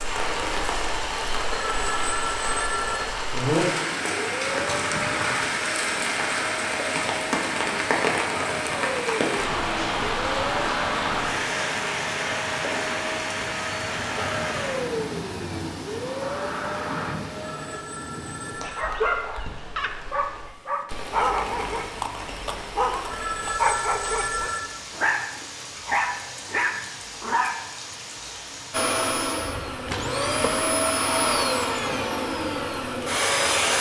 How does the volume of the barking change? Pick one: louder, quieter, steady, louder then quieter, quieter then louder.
steady.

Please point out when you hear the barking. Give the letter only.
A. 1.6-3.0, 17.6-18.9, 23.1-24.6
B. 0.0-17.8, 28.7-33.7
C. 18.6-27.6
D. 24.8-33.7
C.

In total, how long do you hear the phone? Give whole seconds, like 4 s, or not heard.
4 s.